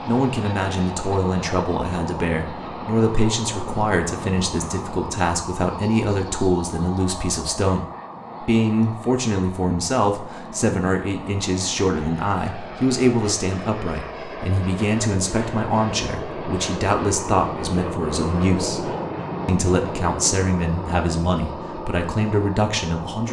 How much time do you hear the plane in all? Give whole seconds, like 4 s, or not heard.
23 s.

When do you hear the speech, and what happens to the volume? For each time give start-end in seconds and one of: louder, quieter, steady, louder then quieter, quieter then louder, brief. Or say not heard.
0.1-23.2 steady.